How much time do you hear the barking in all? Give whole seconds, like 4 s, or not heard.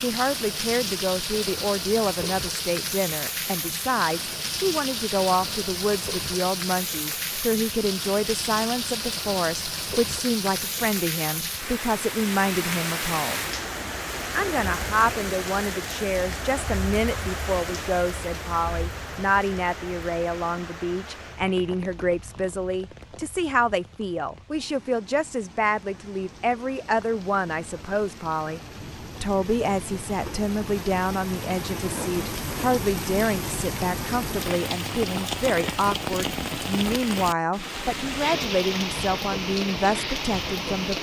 not heard.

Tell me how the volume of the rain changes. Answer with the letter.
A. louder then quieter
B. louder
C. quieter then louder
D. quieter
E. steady
C.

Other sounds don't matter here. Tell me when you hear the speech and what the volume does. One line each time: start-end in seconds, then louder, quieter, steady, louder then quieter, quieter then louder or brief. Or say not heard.
0.0-13.5 steady
14.3-28.6 steady
29.2-40.9 steady.